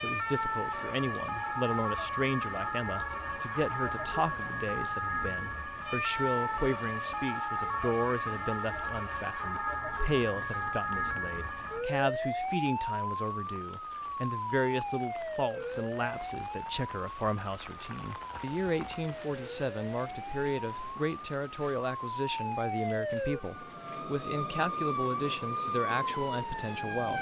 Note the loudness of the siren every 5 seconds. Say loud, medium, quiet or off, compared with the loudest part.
loud, loud, loud, medium, loud, loud.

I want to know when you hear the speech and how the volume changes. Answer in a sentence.
The speech can be heard from 0.0 to 27.1 s, at a steady volume.